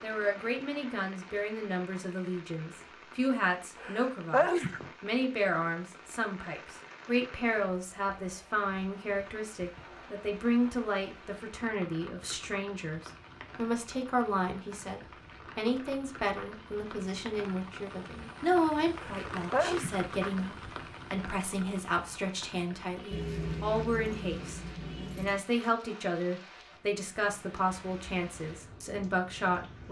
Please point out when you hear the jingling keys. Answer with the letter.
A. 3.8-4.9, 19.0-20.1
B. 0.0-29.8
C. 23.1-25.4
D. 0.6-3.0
C.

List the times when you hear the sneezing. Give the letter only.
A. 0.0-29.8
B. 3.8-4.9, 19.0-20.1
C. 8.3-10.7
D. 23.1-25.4
B.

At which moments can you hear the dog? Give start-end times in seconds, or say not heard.
not heard.